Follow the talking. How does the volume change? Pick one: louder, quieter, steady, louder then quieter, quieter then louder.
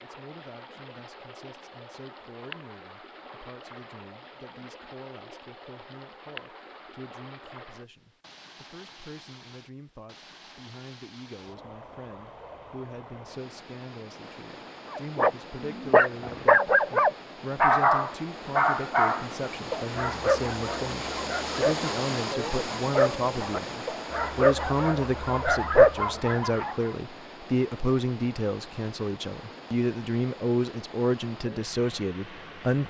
louder.